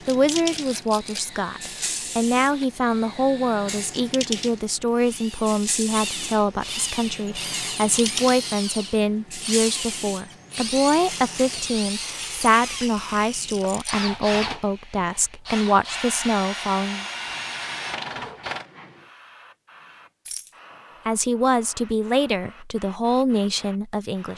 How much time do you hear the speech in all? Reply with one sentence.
You can hear the speech for 20 seconds altogether.